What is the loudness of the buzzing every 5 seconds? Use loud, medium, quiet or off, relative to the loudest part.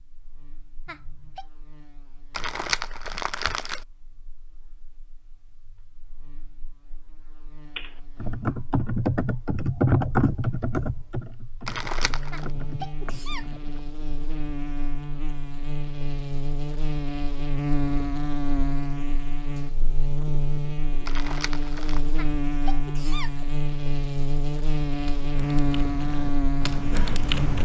quiet, quiet, medium, loud, loud, loud.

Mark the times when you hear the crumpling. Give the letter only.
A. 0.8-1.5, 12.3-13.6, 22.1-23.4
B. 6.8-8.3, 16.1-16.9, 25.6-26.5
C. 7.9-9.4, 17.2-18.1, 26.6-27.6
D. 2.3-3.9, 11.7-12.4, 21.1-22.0
D.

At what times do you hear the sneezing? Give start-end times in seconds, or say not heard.
0.8-1.5, 12.3-13.6, 22.1-23.4.